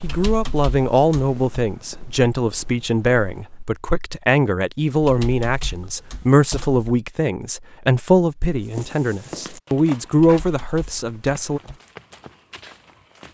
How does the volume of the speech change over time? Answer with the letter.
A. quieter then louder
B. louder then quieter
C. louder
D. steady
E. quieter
D.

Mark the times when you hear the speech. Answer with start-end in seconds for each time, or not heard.
0.0-11.6.